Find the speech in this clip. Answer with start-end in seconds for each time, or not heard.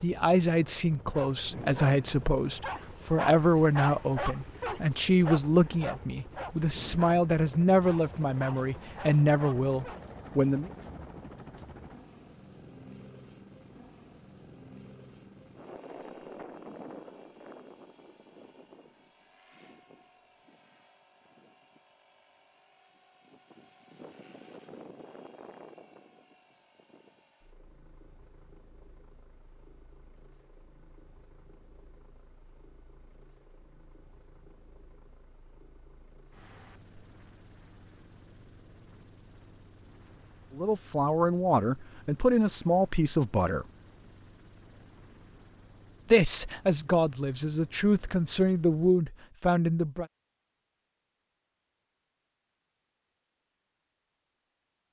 0.0-10.7, 40.5-43.6, 46.1-50.0.